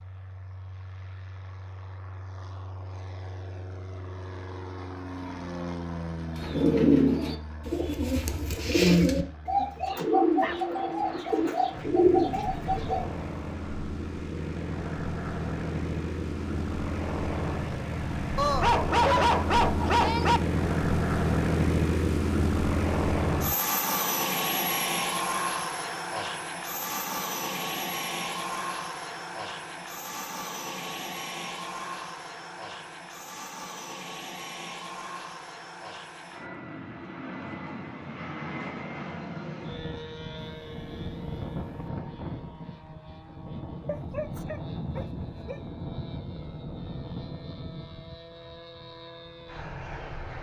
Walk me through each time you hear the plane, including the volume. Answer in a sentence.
You can hear the plane from 0.0 to 50.3 s, getting louder then quieter.